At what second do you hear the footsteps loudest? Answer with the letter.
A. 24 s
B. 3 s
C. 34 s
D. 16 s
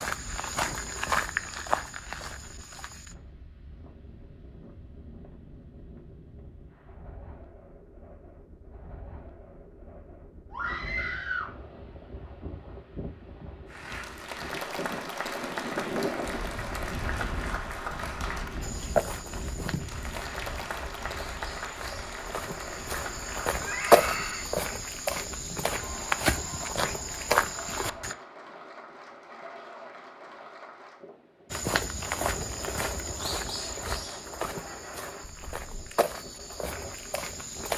A.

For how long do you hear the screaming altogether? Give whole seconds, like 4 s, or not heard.
2 s.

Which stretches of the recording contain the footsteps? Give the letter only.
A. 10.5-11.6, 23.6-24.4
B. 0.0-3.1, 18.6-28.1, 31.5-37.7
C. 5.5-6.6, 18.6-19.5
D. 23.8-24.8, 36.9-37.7
B.